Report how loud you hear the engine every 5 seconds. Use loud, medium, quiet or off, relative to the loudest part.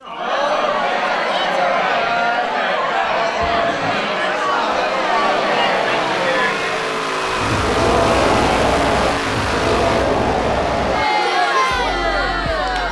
medium, loud, medium.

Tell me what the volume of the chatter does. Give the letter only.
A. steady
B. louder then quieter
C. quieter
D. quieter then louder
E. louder
A.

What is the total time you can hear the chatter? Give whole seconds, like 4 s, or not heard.
13 s.